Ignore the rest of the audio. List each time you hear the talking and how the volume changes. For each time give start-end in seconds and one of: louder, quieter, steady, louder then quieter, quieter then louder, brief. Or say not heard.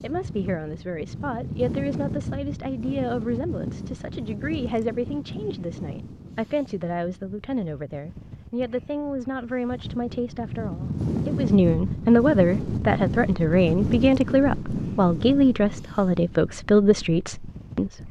0.0-18.0 louder.